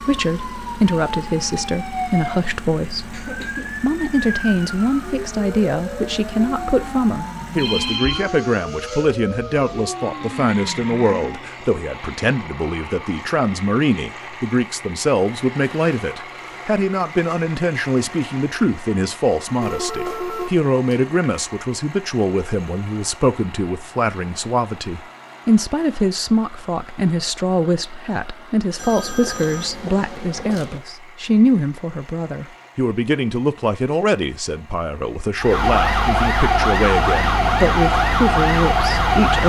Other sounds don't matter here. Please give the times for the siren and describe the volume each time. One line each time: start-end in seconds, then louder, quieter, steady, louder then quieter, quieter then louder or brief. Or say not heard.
0.0-11.5 steady
35.4-39.4 steady.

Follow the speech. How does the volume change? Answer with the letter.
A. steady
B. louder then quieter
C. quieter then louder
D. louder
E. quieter
A.